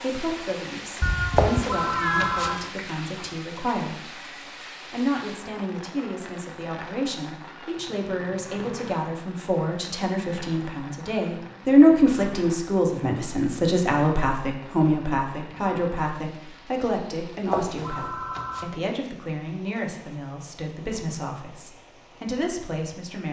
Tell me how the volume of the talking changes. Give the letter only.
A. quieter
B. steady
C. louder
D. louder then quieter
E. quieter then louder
D.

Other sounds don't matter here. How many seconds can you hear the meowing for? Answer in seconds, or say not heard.
2 s.